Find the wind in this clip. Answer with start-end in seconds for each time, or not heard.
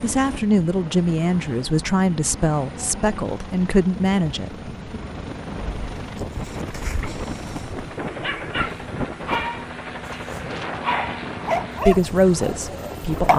4.9-13.3.